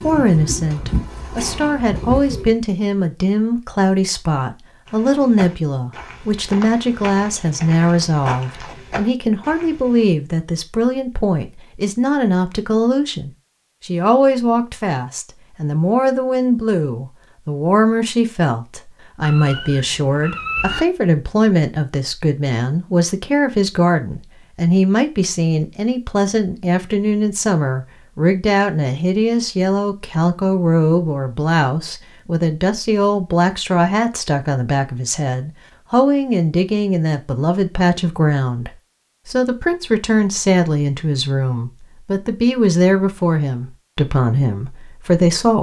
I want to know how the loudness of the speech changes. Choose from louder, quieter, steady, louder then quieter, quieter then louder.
steady.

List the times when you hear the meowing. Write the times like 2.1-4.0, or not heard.
19.2-20.9.